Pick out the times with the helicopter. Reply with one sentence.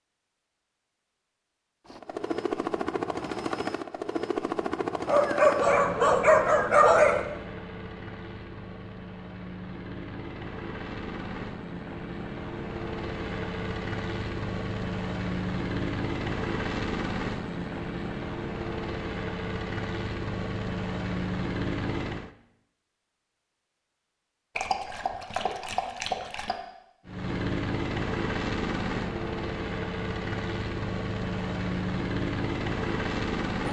You can hear the helicopter from 1.9 to 22.3 s and from 27.1 to 33.6 s.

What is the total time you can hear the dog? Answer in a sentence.
You can hear the dog for 4 seconds altogether.